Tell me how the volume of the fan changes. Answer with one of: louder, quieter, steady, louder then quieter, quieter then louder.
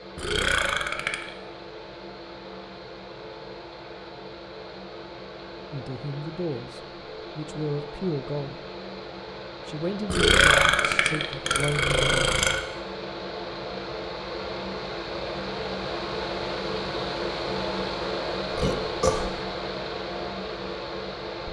louder.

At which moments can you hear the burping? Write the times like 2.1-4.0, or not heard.
0.1-1.4, 10.1-12.7, 18.6-19.4.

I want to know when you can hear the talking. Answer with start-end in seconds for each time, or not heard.
5.7-8.6, 9.7-12.3.